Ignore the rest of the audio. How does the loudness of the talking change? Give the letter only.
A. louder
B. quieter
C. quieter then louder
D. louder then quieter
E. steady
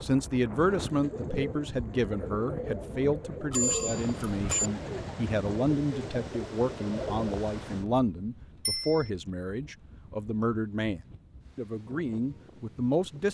E.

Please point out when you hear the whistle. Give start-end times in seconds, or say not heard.
not heard.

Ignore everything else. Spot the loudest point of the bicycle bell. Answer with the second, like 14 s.
4 s.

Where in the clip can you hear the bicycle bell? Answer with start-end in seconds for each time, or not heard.
3.5-4.7, 8.7-9.1.